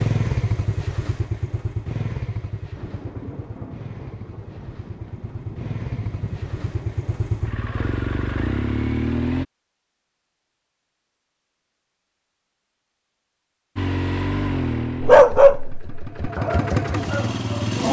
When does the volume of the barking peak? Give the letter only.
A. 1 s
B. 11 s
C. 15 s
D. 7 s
C.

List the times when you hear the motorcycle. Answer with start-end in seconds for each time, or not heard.
0.0-9.4, 13.8-17.8.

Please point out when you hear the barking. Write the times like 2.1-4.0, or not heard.
15.0-17.8.